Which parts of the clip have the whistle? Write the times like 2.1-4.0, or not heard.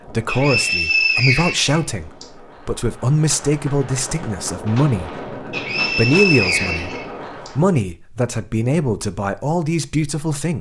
0.2-2.2, 5.5-7.5.